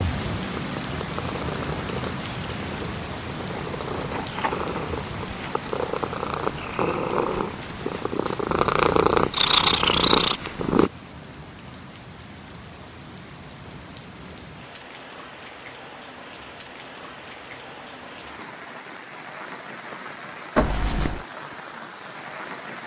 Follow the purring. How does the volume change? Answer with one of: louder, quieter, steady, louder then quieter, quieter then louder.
louder.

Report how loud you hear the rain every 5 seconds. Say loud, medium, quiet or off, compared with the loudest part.
loud, medium, medium, medium, medium.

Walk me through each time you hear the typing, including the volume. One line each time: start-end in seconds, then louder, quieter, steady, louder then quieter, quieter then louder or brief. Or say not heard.
not heard.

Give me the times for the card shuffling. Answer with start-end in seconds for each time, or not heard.
20.6-21.2.